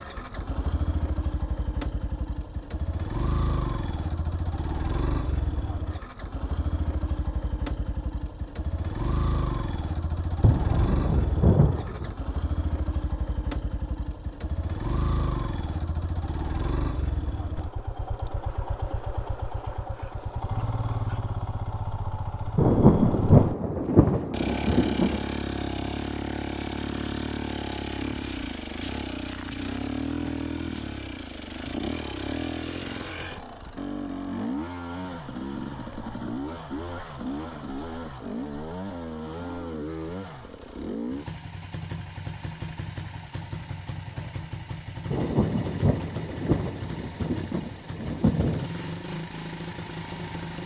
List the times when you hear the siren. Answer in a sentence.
The siren can't be heard in this clip.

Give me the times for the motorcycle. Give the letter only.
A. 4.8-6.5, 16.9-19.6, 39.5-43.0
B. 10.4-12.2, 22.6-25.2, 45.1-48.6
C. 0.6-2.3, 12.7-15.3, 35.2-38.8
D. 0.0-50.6
D.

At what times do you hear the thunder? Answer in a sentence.
You can hear the thunder from 10.4 to 12.2 s, from 22.6 to 25.2 s and from 45.1 to 48.6 s.